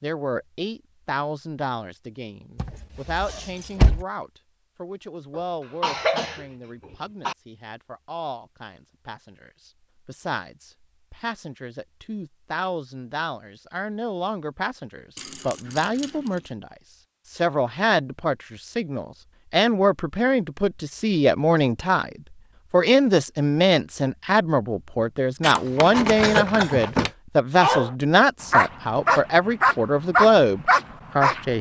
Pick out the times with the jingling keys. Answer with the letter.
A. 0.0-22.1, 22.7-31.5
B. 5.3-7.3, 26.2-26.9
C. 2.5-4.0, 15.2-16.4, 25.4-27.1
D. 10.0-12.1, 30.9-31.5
C.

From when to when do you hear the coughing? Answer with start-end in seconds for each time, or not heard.
5.3-7.3, 26.2-26.9.